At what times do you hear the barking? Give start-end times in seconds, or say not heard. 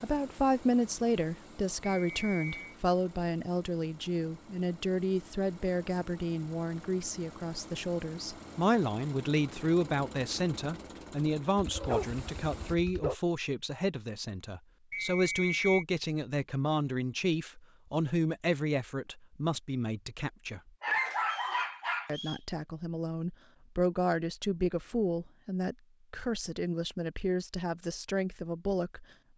11.6-13.2, 20.8-22.1.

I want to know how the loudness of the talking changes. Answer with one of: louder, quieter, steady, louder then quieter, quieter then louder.
steady.